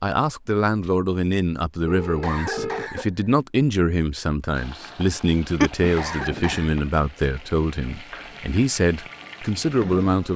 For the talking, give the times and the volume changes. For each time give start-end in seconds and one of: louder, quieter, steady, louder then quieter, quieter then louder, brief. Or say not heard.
0.0-10.3 steady.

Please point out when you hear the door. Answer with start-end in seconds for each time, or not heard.
not heard.